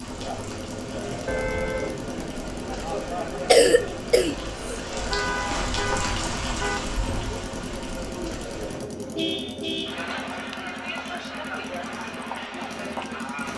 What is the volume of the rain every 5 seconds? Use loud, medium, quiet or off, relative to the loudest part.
medium, loud, off.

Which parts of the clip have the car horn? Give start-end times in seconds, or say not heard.
1.2-1.9, 5.0-6.8, 9.2-10.6.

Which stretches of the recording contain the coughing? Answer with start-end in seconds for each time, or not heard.
3.1-4.8.